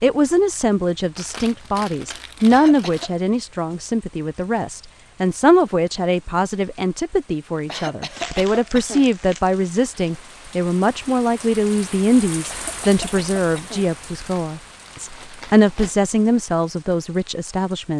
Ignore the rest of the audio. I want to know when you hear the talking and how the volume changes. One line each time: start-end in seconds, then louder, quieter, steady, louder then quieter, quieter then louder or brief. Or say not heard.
0.0-17.9 steady.